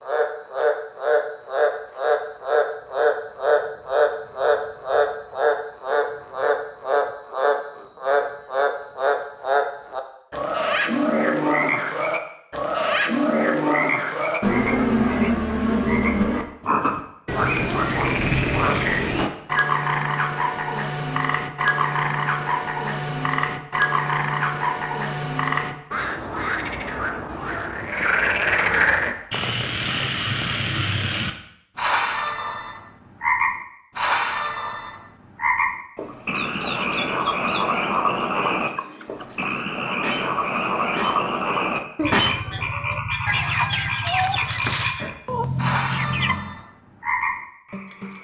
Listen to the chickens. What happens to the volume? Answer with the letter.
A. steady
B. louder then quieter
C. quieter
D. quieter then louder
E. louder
E.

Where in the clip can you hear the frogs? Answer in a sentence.
You can hear the frogs from 0.0 to 48.1 s.